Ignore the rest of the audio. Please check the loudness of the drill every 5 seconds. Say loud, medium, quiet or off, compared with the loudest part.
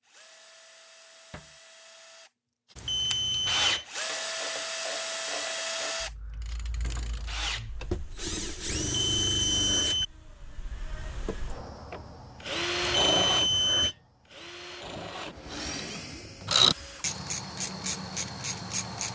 loud, loud, loud, medium.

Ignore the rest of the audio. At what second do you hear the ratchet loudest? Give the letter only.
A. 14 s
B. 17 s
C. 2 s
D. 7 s
B.